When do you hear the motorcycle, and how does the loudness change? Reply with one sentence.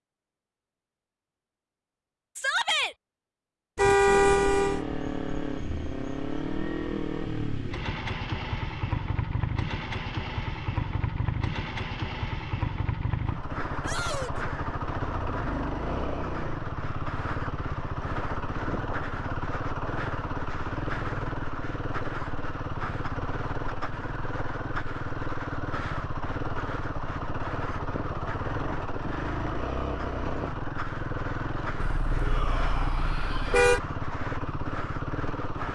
You can hear the motorcycle from 4.0 to 35.6 s, at a steady volume.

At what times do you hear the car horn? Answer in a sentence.
The car horn can be heard from 3.8 to 4.8 s and from 31.8 to 33.8 s.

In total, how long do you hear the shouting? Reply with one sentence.
You can hear the shouting for 3 seconds altogether.